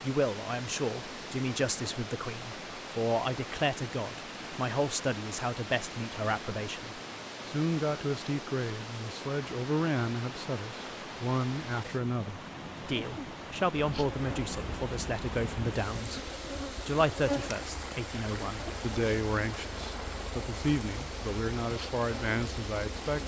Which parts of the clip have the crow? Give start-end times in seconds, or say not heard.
not heard.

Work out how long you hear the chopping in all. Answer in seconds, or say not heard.
not heard.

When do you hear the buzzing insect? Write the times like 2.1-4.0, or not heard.
13.8-23.2.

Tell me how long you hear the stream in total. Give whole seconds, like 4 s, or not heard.
23 s.